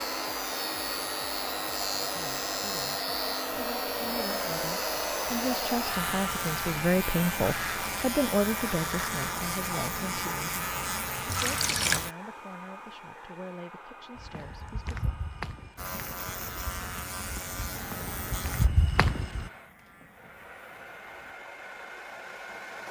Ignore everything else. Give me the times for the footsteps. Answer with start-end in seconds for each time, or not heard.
14.2-19.5.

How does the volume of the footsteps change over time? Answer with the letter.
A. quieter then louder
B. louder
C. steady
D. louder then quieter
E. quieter
A.